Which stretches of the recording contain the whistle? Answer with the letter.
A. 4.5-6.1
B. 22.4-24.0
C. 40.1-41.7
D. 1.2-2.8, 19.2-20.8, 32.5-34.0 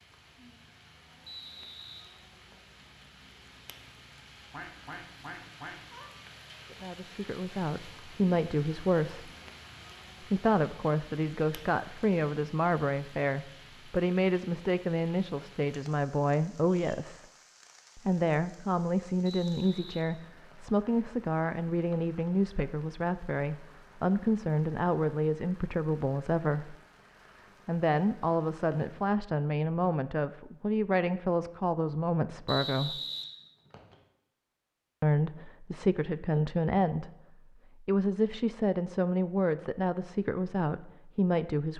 D.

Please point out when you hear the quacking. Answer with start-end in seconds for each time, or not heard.
4.5-6.1.